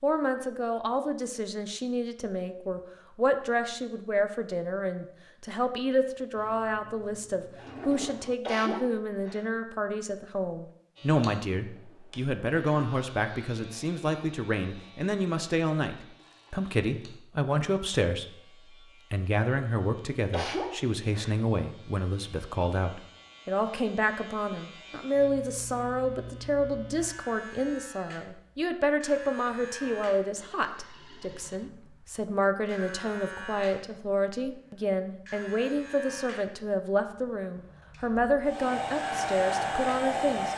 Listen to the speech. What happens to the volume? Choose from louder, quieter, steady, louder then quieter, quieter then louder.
steady.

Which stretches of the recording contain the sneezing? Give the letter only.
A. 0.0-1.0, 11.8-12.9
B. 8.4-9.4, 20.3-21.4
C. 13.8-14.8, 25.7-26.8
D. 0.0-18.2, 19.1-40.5
B.